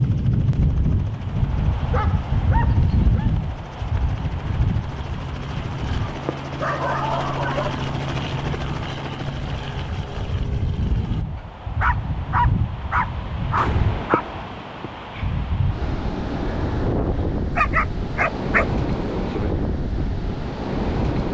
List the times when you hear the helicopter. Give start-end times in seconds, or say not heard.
0.0-11.2.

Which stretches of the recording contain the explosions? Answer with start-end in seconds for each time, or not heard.
13.6-14.4.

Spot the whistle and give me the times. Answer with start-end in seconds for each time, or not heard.
not heard.